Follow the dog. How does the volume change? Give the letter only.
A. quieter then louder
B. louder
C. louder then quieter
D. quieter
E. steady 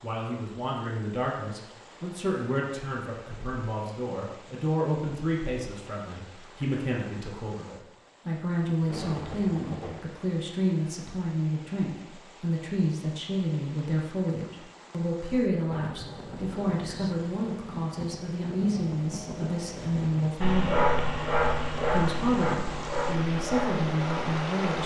D.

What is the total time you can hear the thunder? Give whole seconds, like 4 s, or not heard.
6 s.